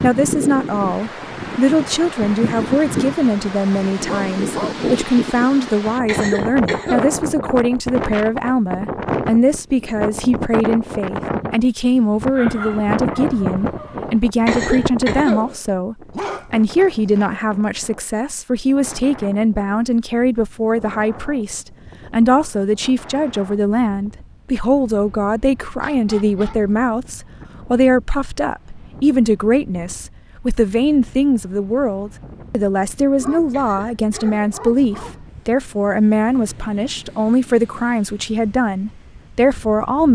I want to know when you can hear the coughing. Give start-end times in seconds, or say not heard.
6.0-7.2, 14.4-15.6, 33.5-34.6.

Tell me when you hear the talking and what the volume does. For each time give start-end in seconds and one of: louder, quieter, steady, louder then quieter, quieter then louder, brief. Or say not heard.
0.0-40.1 steady.